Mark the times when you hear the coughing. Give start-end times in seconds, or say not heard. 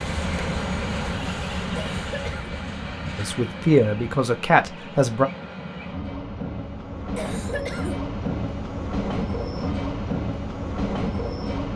1.8-2.5, 7.2-8.0.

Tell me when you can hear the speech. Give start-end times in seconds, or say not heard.
3.1-5.2.